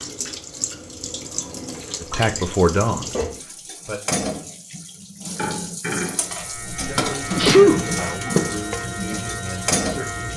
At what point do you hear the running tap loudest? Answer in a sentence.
The volume of the running tap peaks at 8 seconds.